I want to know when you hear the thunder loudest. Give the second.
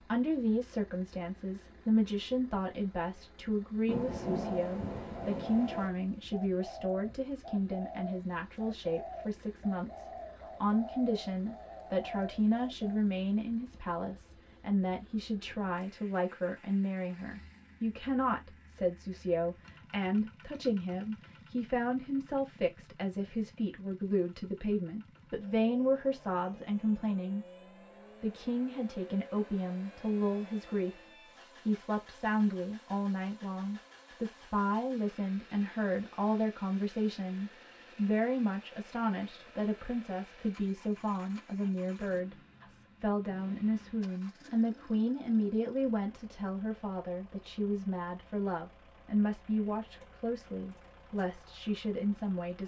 4 s.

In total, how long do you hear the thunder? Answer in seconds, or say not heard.
2 s.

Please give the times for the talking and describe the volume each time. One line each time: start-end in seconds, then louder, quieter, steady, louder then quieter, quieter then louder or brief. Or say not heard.
0.0-27.4 steady
28.2-52.6 steady.